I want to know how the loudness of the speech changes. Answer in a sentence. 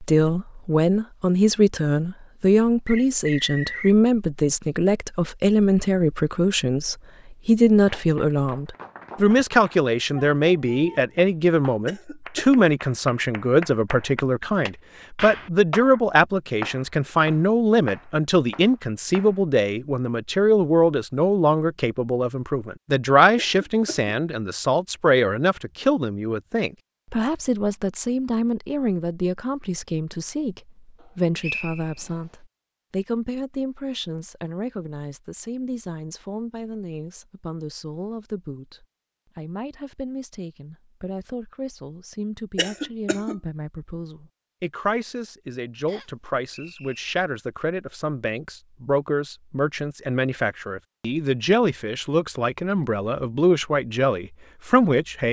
The loudness of the speech goes down, then up.